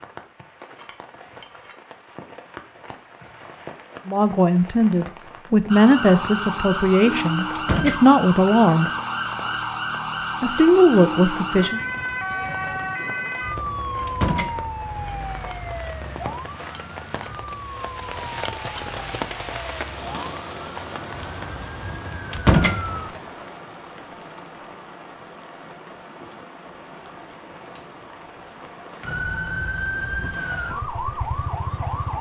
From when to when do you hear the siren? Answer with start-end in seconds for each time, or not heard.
5.7-23.2, 29.0-32.1.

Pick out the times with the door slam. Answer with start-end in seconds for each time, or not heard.
7.5-8.0, 14.1-14.6, 22.3-22.8.